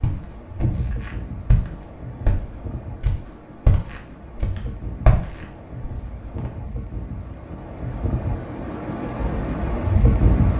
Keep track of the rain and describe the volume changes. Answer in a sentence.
The volume of the rain goes down, then up.